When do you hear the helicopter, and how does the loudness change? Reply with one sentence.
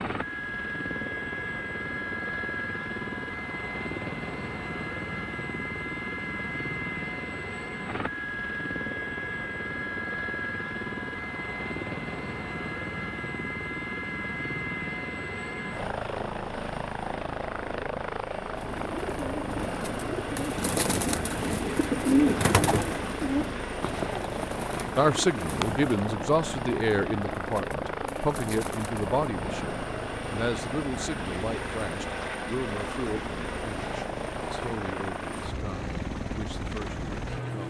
The helicopter can be heard from 0.0 to 37.6 s, at a steady volume.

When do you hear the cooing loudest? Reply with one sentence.
The volume of the cooing peaks at 22 seconds.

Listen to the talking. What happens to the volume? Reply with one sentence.
The volume of the talking goes down.